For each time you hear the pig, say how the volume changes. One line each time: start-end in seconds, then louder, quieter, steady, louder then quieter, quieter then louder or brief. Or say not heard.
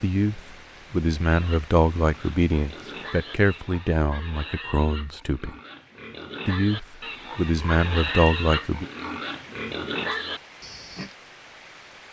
1.2-11.1 louder.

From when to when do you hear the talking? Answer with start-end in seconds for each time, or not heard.
0.0-5.5, 6.5-8.8.